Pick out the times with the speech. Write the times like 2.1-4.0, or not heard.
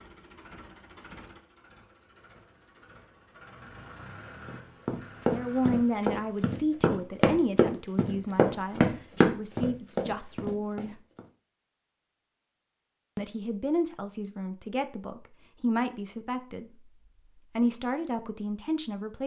5.2-11.0, 13.2-16.7, 17.6-19.2.